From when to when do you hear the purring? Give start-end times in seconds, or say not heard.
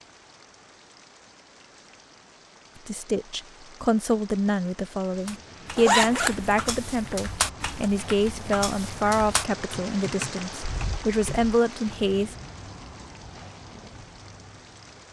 not heard.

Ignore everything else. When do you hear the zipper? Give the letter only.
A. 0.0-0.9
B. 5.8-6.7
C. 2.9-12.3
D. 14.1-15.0
B.